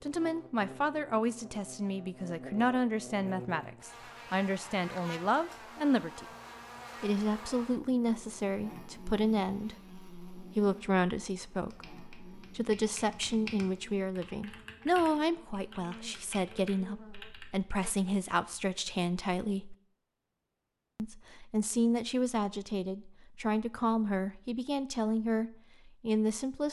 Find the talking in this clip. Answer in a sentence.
The talking can be heard from 0.0 to 6.2 s, from 7.0 to 19.8 s and from 20.9 to 26.6 s.